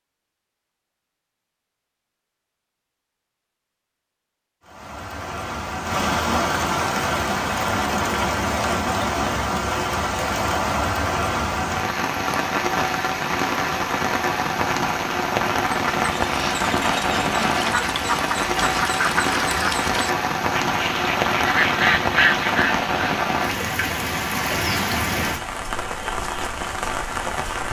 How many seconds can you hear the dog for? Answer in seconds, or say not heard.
not heard.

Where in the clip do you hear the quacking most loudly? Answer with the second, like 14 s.
22 s.